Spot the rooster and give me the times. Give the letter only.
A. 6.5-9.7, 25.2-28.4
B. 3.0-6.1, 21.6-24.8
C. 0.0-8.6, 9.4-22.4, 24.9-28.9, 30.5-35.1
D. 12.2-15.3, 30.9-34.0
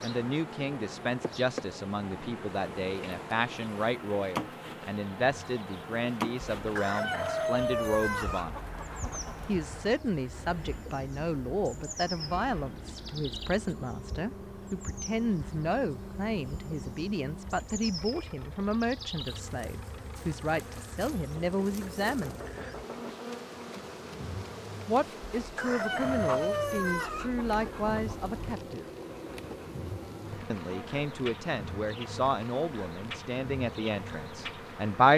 A.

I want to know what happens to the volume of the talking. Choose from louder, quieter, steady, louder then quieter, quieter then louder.
steady.